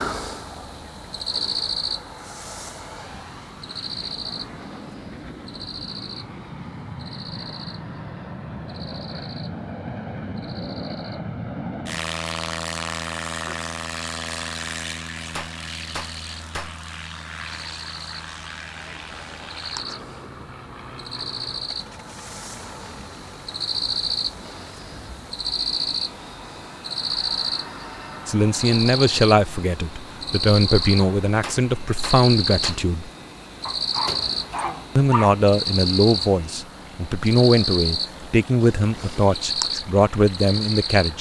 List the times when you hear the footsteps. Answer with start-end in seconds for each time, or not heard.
not heard.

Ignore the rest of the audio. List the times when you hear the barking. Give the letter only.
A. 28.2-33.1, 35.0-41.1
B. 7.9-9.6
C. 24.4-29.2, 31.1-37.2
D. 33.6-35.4
D.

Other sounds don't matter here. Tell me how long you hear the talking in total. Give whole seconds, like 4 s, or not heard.
11 s.